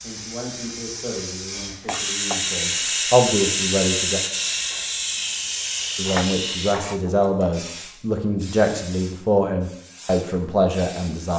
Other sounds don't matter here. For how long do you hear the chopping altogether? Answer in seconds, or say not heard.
2 s.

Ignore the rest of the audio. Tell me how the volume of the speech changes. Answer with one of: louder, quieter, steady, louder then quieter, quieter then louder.
louder.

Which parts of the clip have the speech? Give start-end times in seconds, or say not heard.
0.0-4.2, 6.0-11.3.